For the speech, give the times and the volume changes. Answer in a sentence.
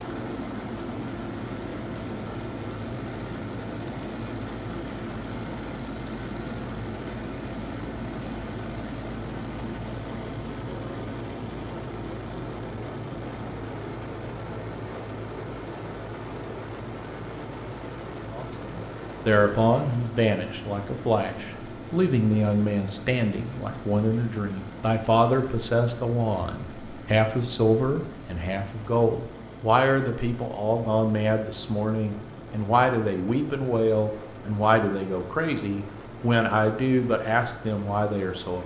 The speech can be heard from 18.3 to 38.6 s, at a steady volume.